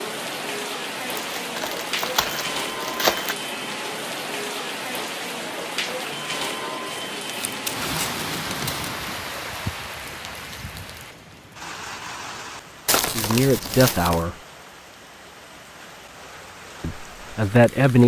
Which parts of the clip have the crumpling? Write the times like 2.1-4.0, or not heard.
1.1-3.4, 6.9-8.9, 12.8-14.2.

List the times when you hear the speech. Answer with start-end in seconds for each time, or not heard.
13.1-14.3, 16.8-18.0.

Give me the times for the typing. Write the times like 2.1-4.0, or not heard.
not heard.